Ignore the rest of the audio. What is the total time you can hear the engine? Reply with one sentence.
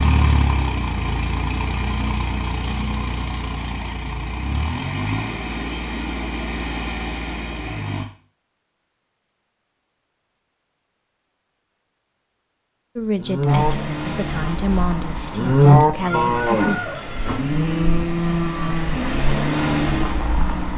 The engine can be heard for 15 seconds in total.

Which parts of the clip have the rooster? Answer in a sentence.
You can hear the rooster from 15.9 to 17.4 s.